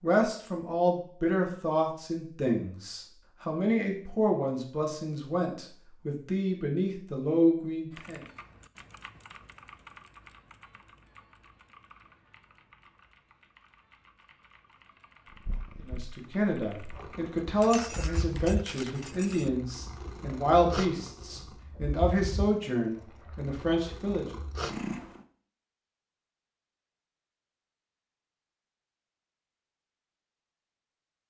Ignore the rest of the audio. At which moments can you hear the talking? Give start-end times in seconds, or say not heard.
0.0-8.2, 15.8-24.4.